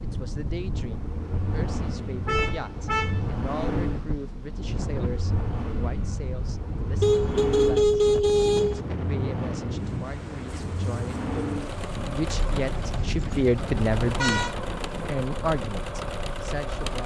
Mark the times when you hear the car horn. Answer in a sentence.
You can hear the car horn from 2.2 to 3.2 s, from 7.0 to 8.8 s and from 12.2 to 14.6 s.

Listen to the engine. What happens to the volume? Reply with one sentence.
The volume of the engine stays about the same.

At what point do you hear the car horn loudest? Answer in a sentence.
The loudest moment of the car horn is at 8 seconds.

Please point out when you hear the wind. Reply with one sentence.
The wind can be heard from 0.0 to 17.0 s.